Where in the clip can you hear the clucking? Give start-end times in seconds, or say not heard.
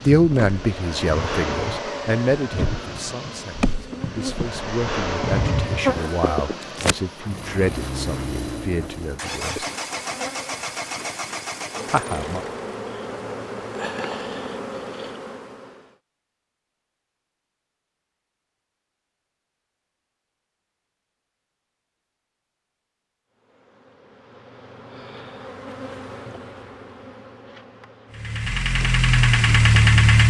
not heard.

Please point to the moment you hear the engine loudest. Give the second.
30 s.